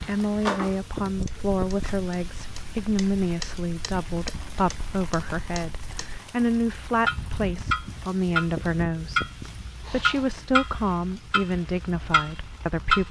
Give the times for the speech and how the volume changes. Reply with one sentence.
The speech can be heard from 0.0 to 13.0 s, at a steady volume.